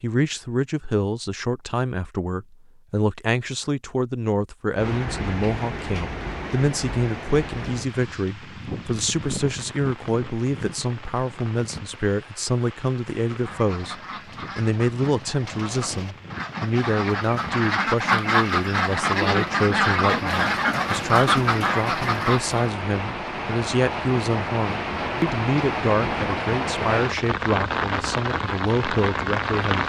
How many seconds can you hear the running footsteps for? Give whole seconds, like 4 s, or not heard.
not heard.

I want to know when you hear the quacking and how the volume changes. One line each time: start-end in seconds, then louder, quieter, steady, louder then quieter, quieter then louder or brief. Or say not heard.
13.3-22.7 louder.